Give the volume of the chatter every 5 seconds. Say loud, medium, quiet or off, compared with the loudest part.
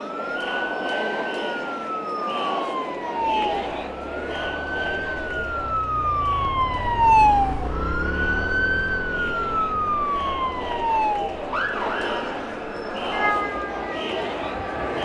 loud, medium, loud.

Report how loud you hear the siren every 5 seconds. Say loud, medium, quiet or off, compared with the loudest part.
medium, loud, medium.